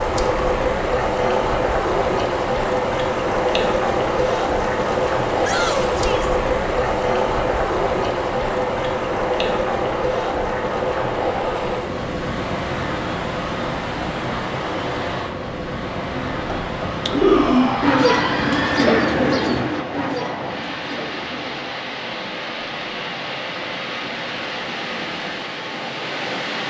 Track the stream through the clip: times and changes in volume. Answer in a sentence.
You can hear the stream from 0.0 to 26.6 s, getting quieter.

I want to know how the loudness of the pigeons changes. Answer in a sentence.
The loudness of the pigeons goes down.